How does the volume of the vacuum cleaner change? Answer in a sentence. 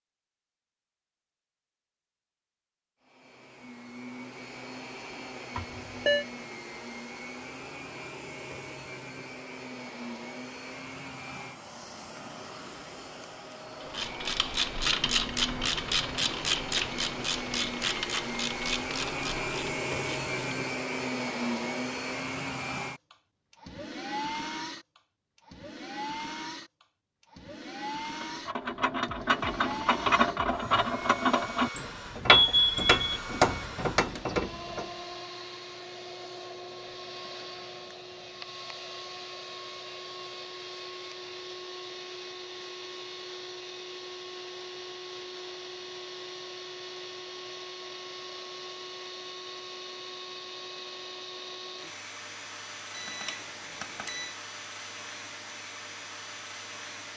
The volume of the vacuum cleaner goes up, then down.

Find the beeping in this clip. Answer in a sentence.
The beeping can be heard from 5.5 to 6.2 s, from 32.3 to 33.0 s and from 53.0 to 54.3 s.